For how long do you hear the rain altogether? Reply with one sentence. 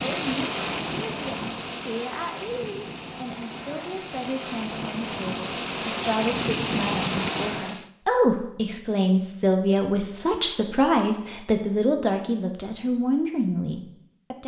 The rain can be heard for 8 seconds in total.